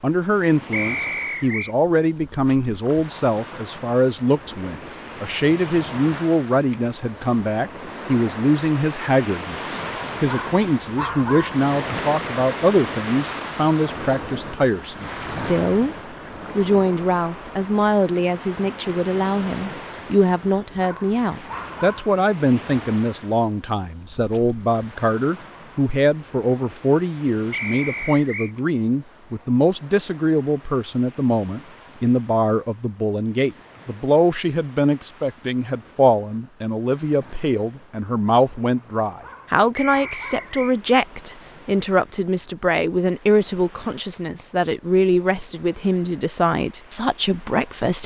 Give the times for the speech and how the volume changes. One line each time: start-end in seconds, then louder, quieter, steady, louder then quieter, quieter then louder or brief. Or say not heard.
0.0-15.9 steady
16.6-48.0 steady.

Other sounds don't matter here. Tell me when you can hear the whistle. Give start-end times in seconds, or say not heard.
0.7-1.8, 27.5-28.5, 39.8-40.8.